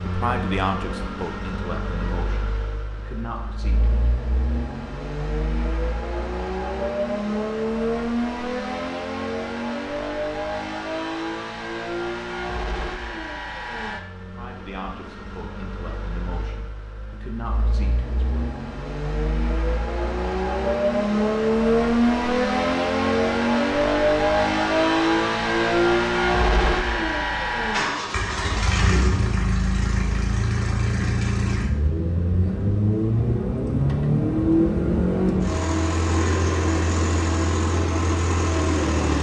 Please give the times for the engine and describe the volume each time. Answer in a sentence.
The engine can be heard from 0.0 to 39.1 s, getting louder.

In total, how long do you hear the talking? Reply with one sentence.
You can hear the talking for 8 seconds altogether.